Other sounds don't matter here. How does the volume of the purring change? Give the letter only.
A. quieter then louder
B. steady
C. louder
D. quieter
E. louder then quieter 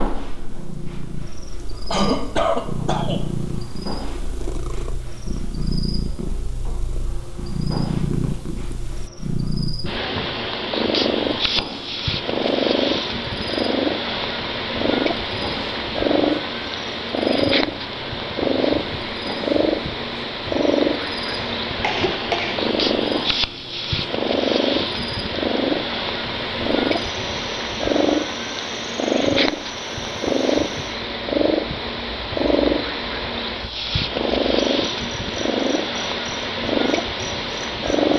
C.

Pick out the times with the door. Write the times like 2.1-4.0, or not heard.
not heard.